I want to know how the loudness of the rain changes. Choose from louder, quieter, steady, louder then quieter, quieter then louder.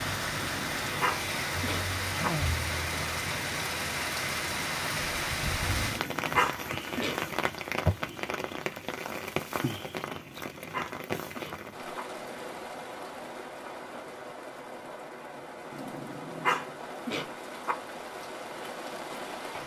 quieter.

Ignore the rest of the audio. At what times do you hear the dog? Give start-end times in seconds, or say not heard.
0.2-2.3, 5.6-7.2, 10.1-12.0, 15.7-17.8.